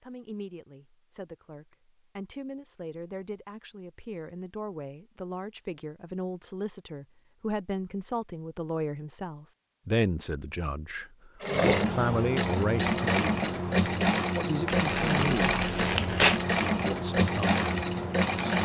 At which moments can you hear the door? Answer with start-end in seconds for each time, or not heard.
not heard.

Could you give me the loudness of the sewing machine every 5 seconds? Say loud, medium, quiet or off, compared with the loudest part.
off, off, loud, loud.